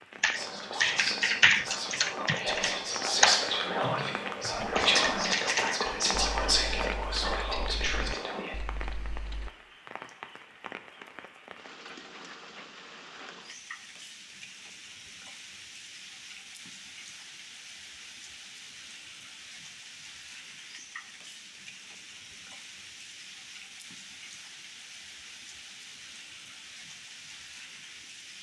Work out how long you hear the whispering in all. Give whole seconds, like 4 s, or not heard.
8 s.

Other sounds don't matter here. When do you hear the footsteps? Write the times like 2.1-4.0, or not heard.
not heard.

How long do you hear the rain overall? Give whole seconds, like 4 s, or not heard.
28 s.